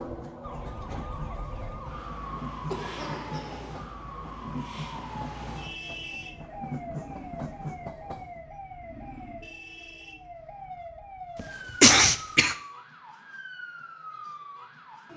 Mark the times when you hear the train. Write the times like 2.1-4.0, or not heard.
0.0-8.4.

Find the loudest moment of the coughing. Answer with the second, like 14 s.
12 s.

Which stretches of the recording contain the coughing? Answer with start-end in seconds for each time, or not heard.
2.5-3.9, 11.3-12.6.